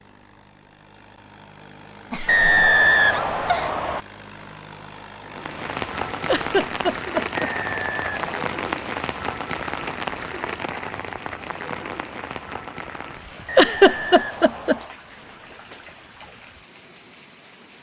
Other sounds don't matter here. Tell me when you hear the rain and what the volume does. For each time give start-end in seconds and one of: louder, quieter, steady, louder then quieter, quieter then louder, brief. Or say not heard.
5.2-17.7 quieter.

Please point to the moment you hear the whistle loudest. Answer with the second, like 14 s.
3 s.